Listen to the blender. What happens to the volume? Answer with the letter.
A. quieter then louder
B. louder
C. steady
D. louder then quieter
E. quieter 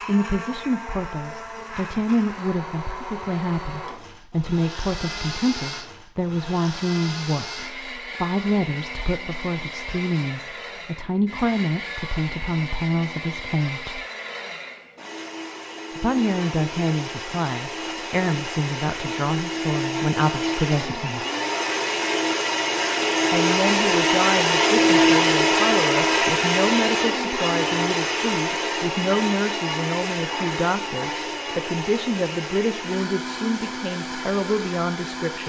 D.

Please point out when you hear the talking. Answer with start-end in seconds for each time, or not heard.
0.1-14.1, 15.9-21.2, 23.3-35.4.